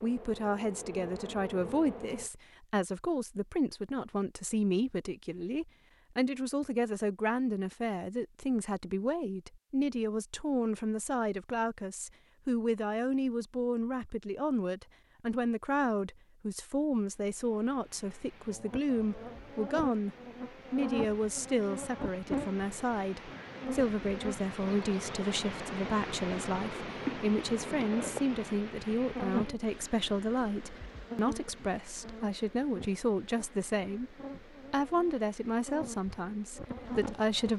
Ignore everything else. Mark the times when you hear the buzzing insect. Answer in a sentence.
The buzzing insect can be heard from 0.0 to 2.3 s and from 18.4 to 37.5 s.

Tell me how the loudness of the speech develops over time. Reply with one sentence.
The loudness of the speech stays about the same.